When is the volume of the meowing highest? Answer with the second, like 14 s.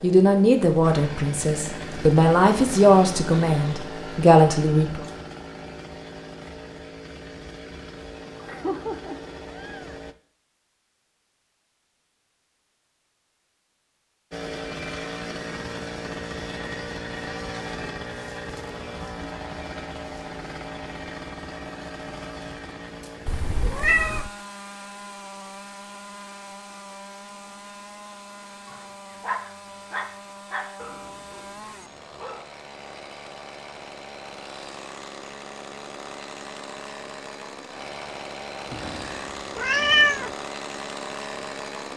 40 s.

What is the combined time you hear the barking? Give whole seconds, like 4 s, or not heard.
4 s.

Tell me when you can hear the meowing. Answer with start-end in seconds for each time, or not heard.
8.2-10.0, 23.2-24.3, 38.7-40.3.